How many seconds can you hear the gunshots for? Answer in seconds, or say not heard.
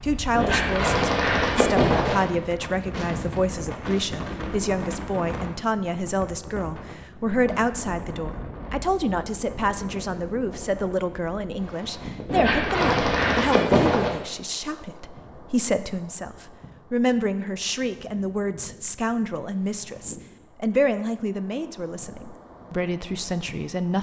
4 s.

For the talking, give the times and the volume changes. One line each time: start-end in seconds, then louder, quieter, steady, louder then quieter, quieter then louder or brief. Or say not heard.
0.0-23.9 steady.